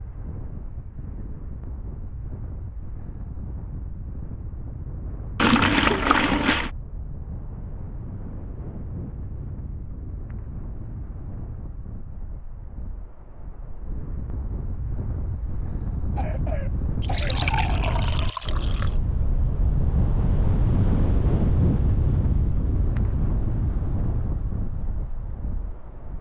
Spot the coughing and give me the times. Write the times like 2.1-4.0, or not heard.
16.1-17.6.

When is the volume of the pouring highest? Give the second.
6 s.